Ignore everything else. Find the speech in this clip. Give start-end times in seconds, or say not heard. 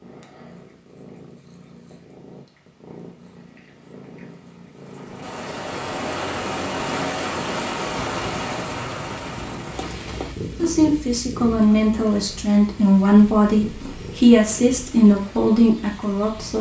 10.6-16.5.